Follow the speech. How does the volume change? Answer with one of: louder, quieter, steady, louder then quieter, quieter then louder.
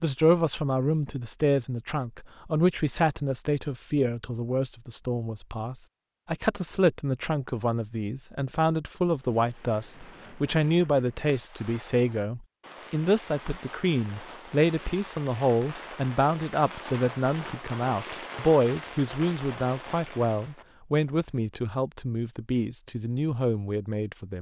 steady.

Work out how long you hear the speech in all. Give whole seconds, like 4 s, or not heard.
24 s.